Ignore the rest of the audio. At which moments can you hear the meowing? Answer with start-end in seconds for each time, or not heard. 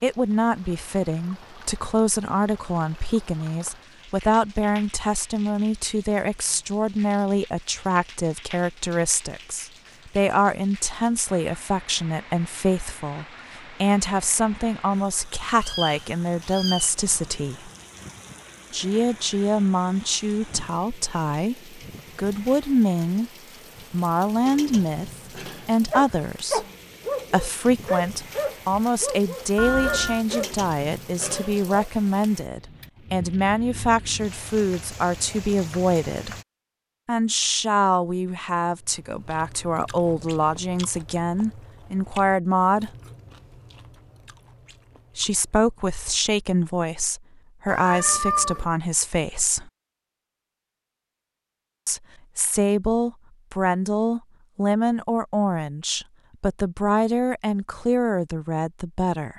15.6-16.9, 29.6-30.2, 47.6-48.6.